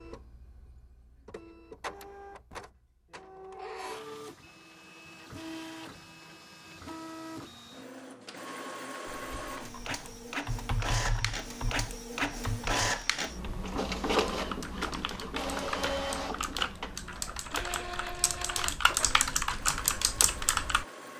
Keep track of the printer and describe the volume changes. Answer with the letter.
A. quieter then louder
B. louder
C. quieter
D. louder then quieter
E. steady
D.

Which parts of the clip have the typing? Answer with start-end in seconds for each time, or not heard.
9.1-20.9.